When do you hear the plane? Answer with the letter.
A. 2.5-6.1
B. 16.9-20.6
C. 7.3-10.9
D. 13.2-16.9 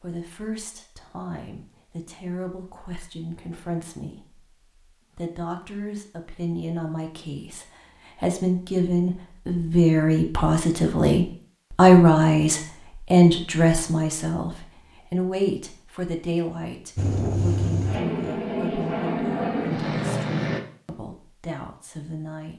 B.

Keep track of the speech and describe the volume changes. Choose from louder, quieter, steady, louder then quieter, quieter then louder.
louder then quieter.